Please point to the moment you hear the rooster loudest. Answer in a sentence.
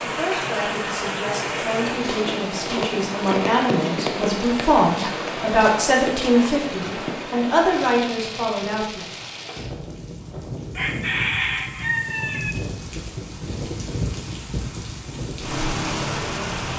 The loudest moment of the rooster is at 11 seconds.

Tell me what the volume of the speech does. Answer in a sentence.
The volume of the speech goes up.